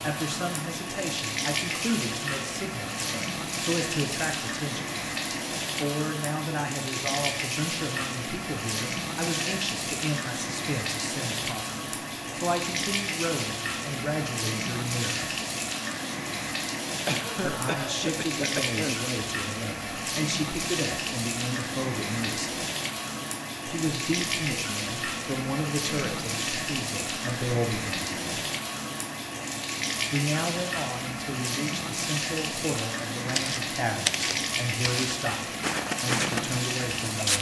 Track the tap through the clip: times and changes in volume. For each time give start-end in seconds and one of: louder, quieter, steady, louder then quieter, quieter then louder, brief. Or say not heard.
0.0-37.3 steady.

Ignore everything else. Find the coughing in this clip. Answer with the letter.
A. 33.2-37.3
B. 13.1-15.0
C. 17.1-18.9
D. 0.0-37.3
C.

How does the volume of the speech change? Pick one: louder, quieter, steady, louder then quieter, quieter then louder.
steady.